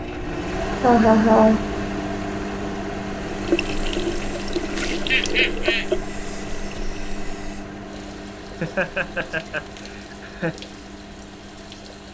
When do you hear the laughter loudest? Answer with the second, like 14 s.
1 s.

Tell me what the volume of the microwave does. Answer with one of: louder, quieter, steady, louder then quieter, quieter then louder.
quieter.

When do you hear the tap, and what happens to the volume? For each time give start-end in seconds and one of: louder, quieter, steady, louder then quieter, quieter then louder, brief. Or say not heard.
3.2-12.1 quieter.